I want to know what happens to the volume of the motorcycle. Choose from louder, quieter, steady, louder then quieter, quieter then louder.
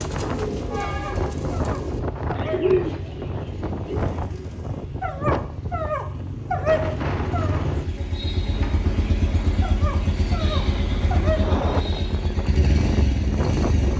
louder.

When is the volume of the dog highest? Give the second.
7 s.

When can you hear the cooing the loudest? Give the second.
3 s.